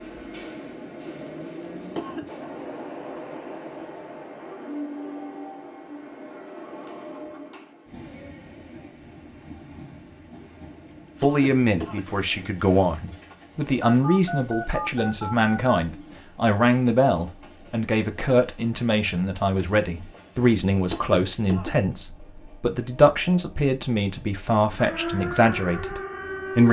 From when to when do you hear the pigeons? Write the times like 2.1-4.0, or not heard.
not heard.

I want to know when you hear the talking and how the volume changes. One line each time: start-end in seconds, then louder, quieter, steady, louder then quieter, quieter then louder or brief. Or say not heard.
11.2-26.6 steady.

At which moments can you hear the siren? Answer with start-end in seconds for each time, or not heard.
24.8-26.6.